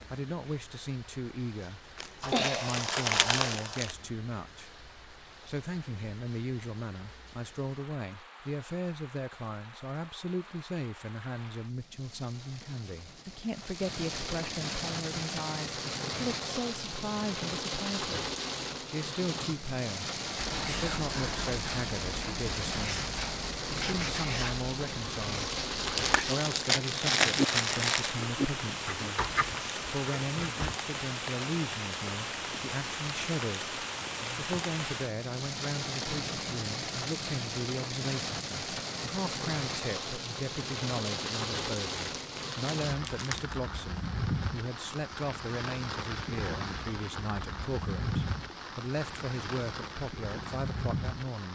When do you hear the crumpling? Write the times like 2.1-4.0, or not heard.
1.9-4.0, 25.8-28.2, 42.0-43.6.